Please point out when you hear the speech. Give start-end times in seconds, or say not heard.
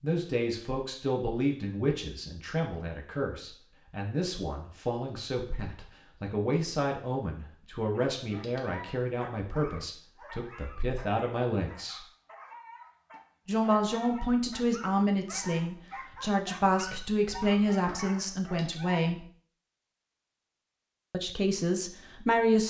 0.0-12.1, 13.4-19.2, 21.1-22.6.